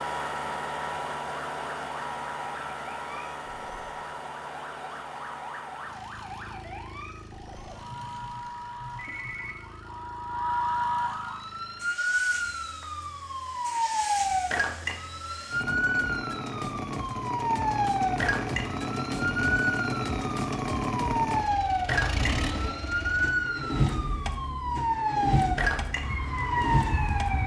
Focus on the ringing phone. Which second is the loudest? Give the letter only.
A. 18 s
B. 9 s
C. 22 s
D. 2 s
C.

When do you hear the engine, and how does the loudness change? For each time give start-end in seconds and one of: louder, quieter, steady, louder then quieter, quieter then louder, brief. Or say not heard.
0.0-27.4 quieter then louder.